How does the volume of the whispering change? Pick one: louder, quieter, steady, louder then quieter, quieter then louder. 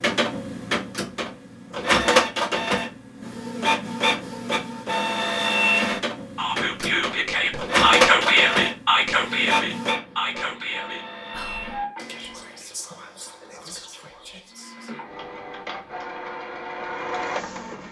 quieter.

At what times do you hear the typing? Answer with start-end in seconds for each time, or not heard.
not heard.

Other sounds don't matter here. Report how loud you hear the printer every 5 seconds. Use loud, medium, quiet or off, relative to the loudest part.
loud, loud, quiet, medium.